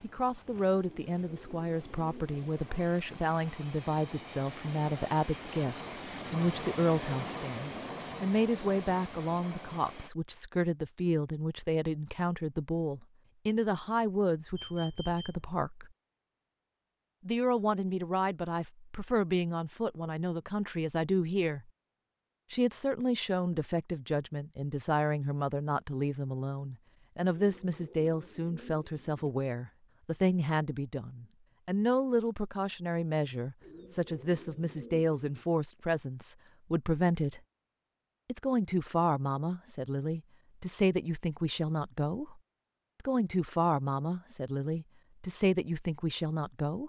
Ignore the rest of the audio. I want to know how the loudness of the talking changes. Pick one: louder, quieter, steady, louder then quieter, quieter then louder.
steady.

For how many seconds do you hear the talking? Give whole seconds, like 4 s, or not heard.
43 s.